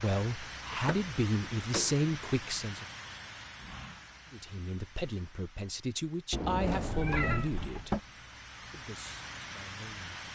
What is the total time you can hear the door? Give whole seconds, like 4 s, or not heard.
3 s.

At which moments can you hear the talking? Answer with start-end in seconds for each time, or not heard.
0.0-2.9, 4.3-10.2.